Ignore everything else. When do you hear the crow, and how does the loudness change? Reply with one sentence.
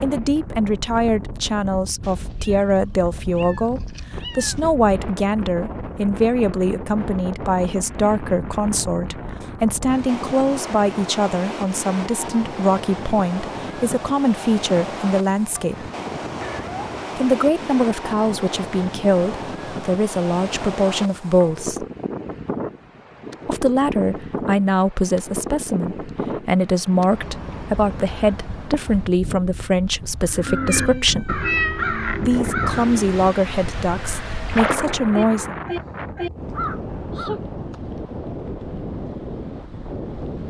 You can hear the crow from 30.2 to 37.4 s, getting quieter then louder.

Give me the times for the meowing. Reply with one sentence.
The meowing can be heard from 2.0 to 4.8 s, from 16.2 to 16.9 s and from 30.4 to 31.9 s.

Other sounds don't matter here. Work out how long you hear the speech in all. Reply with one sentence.
The speech can be heard for 32 seconds in total.